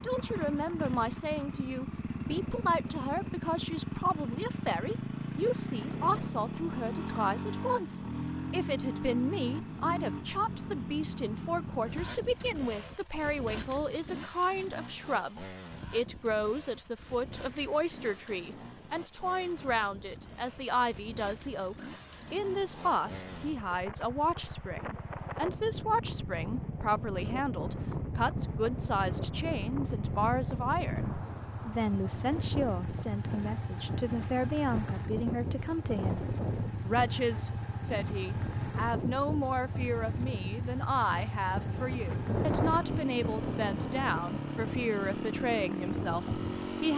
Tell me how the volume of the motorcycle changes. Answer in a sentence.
The volume of the motorcycle goes down, then up.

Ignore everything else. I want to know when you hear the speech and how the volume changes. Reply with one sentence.
You can hear the speech from 0.0 to 36.2 s, at a steady volume; and from 36.9 to 46.9 s, at a steady volume.